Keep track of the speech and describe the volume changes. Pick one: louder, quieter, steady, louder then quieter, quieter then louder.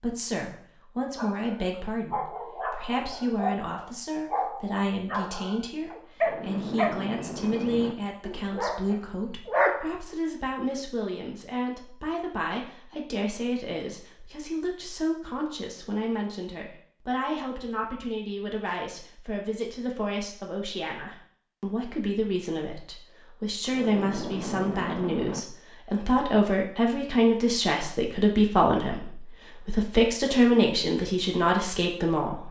louder.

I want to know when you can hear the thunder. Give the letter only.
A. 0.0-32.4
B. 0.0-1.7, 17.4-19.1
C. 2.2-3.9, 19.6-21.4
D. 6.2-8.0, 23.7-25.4
D.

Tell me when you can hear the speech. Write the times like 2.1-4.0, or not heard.
0.0-32.4.